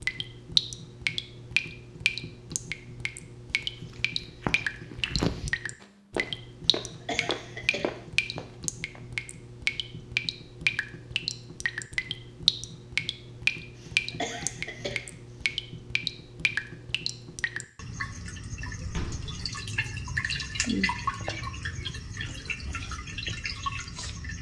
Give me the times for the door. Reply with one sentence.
You can hear the door from 18.8 to 19.4 s.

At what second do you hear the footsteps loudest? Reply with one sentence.
The volume of the footsteps peaks at 5 seconds.